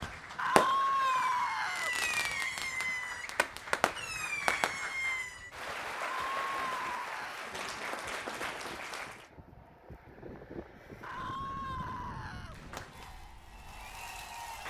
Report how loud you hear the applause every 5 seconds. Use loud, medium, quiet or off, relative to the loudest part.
medium, loud, medium.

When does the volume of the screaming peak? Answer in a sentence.
The volume of the screaming peaks at 1 second.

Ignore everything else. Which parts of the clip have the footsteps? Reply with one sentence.
You can't hear the footsteps here.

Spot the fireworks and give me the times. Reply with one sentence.
The fireworks can be heard from 0.0 to 5.5 s.